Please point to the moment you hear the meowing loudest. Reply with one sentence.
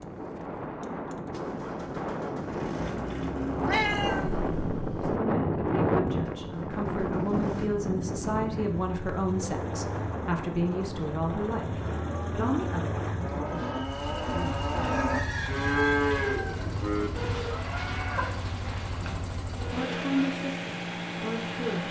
The loudest moment of the meowing is at 4 seconds.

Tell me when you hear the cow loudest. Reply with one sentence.
The volume of the cow peaks at 16 seconds.